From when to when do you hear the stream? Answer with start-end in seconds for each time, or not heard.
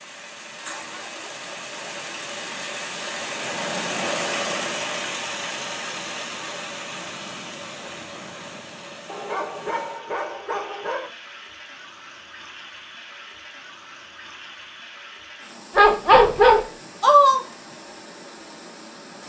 0.0-19.2.